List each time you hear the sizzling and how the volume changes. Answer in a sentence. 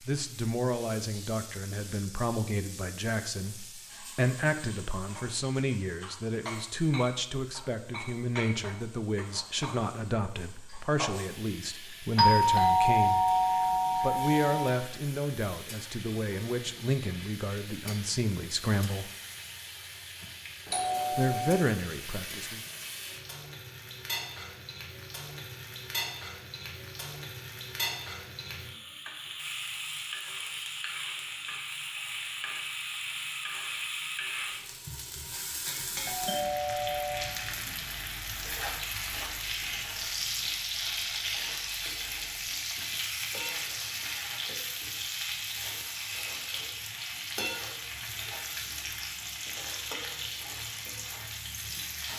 You can hear the sizzling from 0.0 to 52.1 s, getting louder.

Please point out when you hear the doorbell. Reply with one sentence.
You can hear the doorbell from 12.2 to 14.8 s, from 20.2 to 21.6 s and from 36.0 to 37.4 s.